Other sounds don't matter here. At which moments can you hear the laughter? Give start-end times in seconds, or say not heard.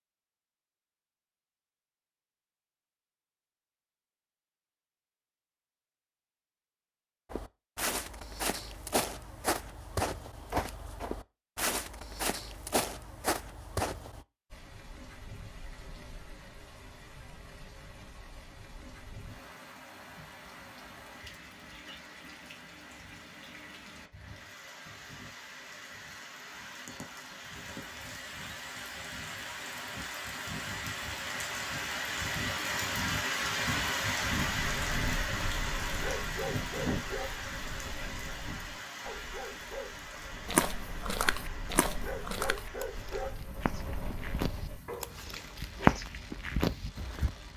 not heard.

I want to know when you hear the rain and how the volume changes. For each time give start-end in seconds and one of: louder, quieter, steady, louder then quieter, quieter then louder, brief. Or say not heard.
14.5-47.5 louder then quieter.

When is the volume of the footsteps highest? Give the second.
46 s.